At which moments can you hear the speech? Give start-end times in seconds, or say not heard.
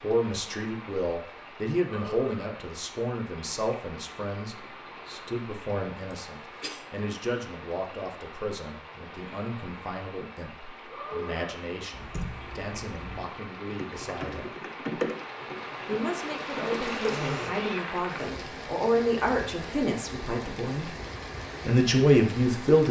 0.0-14.5, 15.8-20.9, 21.6-22.8.